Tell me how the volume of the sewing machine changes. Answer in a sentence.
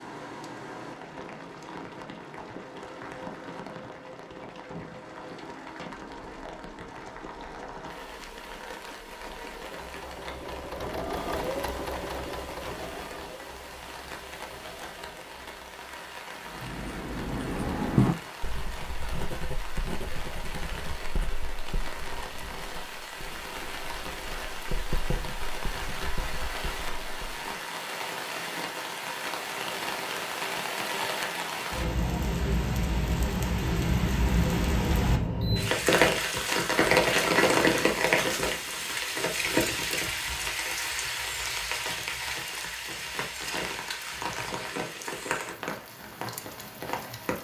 The loudness of the sewing machine goes up, then down.